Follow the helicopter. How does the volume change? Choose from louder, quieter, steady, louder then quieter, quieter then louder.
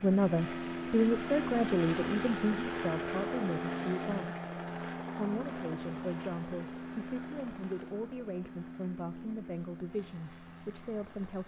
quieter.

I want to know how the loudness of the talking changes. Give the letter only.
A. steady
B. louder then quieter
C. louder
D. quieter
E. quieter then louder
D.